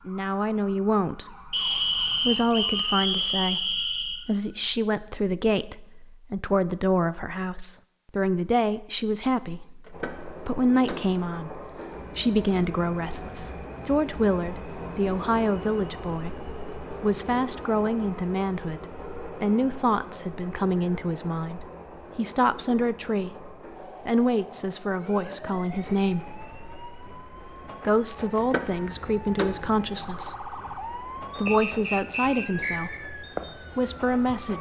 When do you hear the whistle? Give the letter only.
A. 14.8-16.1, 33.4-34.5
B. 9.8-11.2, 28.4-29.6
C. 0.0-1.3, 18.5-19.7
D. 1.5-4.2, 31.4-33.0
D.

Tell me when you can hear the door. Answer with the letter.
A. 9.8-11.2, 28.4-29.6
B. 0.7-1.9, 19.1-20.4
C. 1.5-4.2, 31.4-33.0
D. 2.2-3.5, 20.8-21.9
A.